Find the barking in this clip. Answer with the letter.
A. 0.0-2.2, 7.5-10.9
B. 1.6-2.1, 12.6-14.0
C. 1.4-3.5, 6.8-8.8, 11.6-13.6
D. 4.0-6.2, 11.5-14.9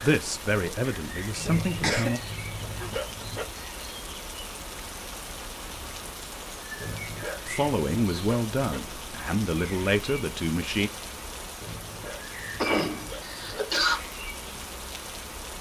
C.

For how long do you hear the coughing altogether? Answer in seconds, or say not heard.
2 s.